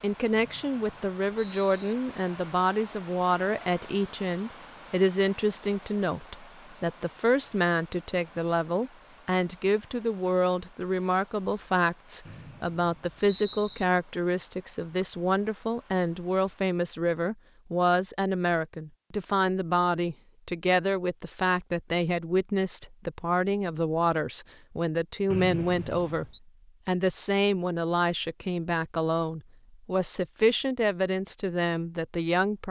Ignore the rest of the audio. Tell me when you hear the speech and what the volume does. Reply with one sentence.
The speech can be heard from 0.0 to 32.6 s, at a steady volume.